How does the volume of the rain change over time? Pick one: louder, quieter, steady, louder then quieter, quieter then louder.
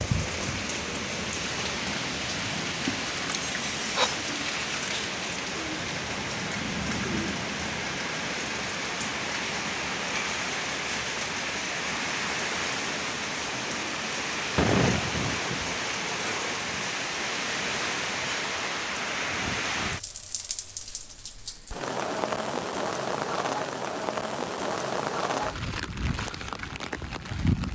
steady.